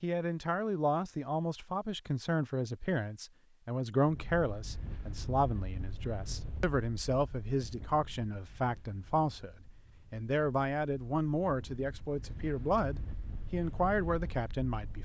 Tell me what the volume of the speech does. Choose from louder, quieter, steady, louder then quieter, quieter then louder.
steady.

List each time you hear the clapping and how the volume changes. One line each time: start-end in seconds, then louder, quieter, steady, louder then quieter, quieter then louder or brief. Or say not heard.
not heard.